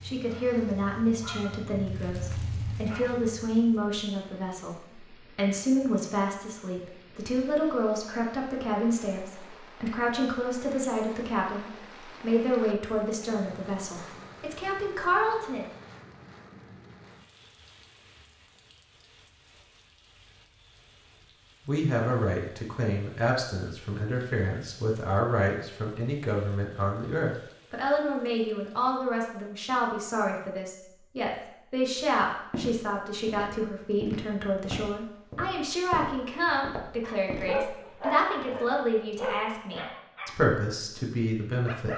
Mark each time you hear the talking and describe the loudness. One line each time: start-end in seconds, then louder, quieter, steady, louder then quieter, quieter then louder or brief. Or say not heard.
0.0-15.7 steady
21.6-41.9 steady.